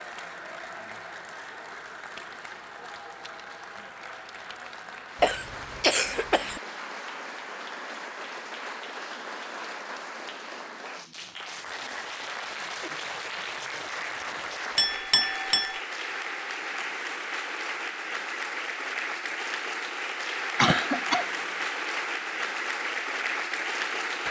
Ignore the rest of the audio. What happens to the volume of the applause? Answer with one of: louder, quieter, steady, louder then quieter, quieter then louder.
louder.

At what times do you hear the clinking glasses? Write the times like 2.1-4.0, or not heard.
14.8-15.8.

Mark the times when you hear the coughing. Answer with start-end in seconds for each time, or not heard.
5.2-6.6, 20.6-21.3.